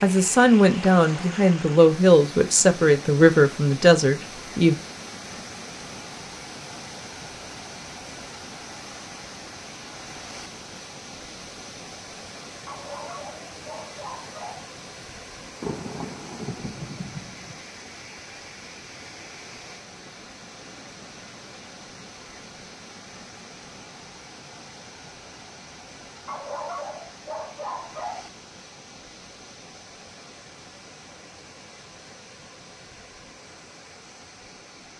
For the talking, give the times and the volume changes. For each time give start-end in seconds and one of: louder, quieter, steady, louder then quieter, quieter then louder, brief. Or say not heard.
0.0-4.8 steady.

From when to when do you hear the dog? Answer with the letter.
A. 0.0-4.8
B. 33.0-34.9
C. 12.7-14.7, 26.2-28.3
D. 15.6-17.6
C.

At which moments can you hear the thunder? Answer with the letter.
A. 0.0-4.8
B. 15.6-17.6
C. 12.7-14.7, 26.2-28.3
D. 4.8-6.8
B.